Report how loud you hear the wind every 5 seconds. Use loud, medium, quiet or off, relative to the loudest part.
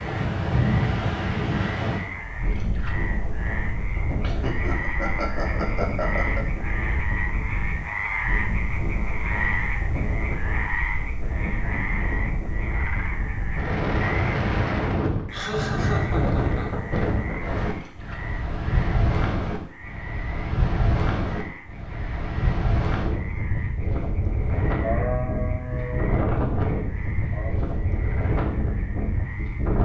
loud, medium, loud, loud, loud, loud.